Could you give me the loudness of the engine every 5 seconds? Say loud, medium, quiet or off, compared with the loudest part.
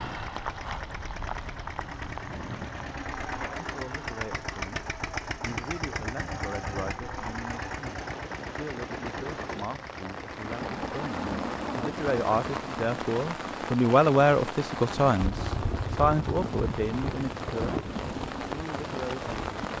loud, loud, medium, off.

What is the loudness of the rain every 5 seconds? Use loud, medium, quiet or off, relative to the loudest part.
medium, medium, loud, loud.